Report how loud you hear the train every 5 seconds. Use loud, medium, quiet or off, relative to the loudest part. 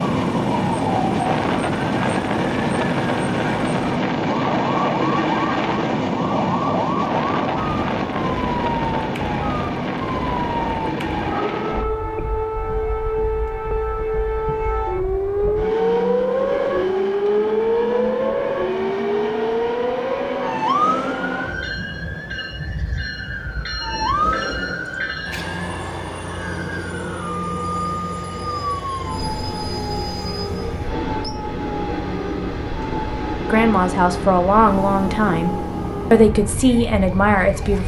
loud, loud, medium, medium, medium, medium, medium, medium.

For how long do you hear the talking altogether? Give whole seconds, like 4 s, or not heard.
4 s.